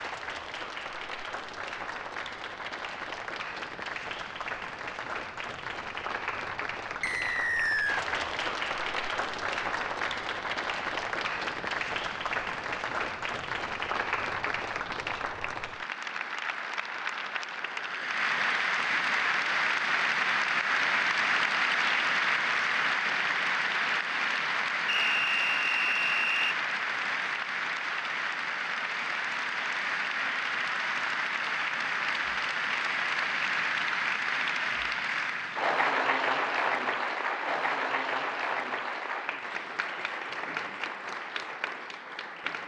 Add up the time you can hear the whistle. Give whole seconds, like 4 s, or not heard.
3 s.